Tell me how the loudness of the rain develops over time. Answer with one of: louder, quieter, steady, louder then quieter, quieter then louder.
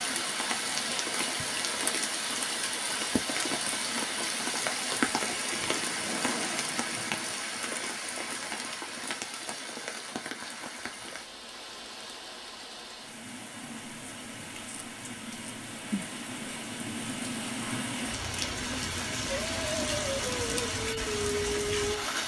quieter then louder.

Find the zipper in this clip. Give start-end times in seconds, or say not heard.
5.5-7.3.